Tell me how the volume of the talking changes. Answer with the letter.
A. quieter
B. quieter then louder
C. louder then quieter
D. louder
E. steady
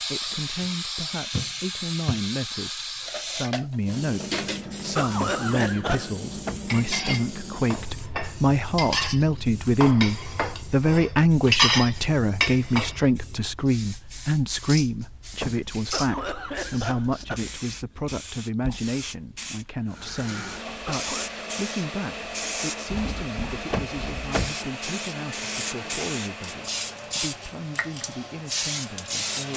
C.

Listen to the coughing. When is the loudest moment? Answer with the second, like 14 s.
5 s.